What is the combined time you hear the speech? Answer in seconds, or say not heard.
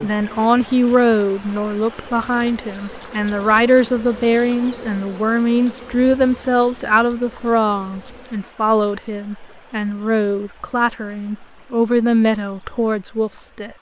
14 s.